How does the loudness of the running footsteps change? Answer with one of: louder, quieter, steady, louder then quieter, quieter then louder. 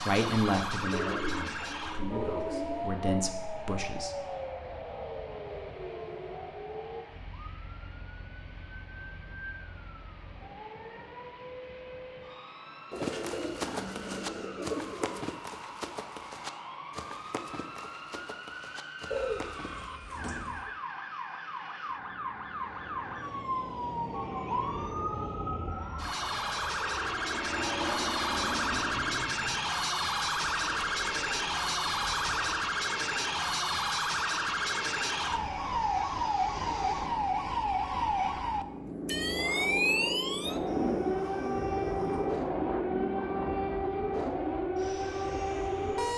quieter.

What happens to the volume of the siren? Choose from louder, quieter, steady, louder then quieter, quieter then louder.
quieter then louder.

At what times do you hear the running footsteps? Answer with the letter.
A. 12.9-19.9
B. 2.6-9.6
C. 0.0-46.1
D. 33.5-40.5
A.